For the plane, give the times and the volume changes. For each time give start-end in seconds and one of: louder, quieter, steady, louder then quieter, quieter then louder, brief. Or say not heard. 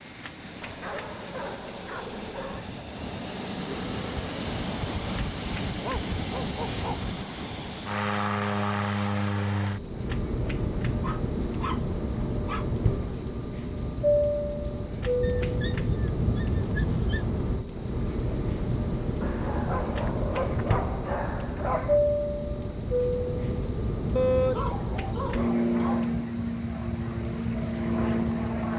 0.0-28.7 steady.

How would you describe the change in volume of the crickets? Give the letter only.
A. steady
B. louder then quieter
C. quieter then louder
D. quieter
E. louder
A.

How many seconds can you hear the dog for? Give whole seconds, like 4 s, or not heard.
12 s.